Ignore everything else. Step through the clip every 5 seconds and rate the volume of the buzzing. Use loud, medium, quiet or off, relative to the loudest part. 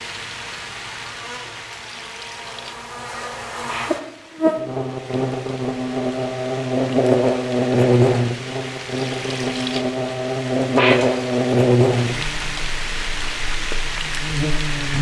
medium, loud, loud.